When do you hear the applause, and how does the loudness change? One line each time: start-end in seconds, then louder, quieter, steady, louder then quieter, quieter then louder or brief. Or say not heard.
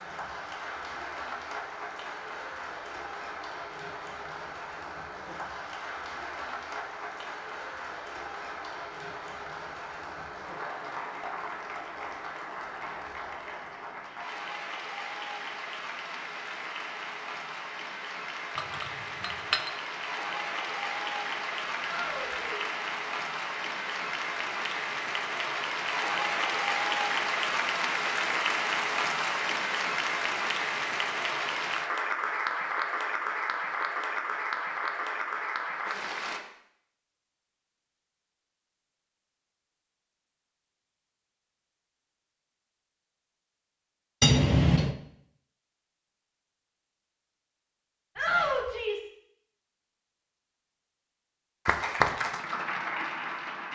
0.0-36.4 louder
51.6-53.7 brief.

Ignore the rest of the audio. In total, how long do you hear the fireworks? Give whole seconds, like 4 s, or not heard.
not heard.